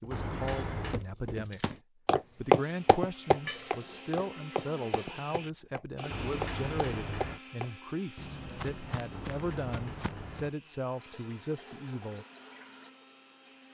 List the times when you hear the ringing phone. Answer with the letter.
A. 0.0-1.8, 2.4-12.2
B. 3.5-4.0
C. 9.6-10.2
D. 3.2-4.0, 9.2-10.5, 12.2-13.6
B.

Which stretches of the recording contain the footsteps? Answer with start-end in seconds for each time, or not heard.
0.0-10.3.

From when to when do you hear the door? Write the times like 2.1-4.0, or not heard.
0.1-0.9, 6.1-7.4, 9.1-10.6.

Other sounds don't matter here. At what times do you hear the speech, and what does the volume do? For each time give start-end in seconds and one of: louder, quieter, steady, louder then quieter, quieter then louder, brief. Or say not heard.
0.0-1.8 brief
2.4-12.2 steady.